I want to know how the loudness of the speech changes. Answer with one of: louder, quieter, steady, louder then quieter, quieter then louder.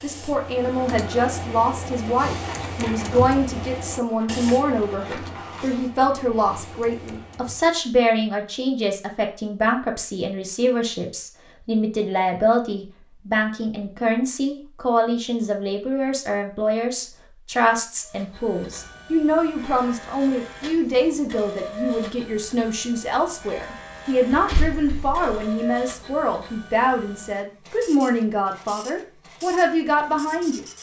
steady.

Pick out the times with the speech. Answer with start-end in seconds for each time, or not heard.
0.0-30.6.